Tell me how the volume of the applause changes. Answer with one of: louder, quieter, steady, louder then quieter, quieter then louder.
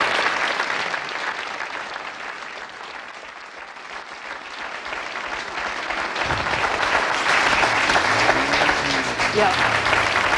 quieter then louder.